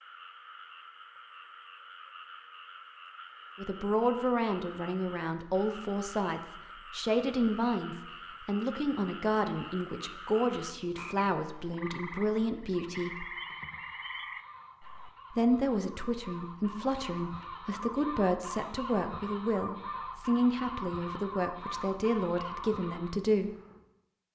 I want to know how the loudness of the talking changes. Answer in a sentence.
The loudness of the talking stays about the same.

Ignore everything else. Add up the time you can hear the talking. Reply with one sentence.
You can hear the talking for 18 seconds altogether.